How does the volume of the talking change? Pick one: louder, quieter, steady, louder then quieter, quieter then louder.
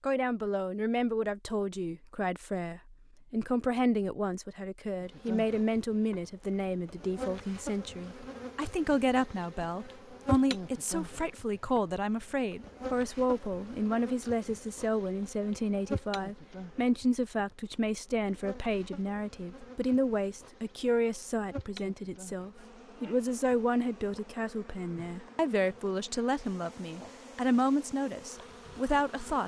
steady.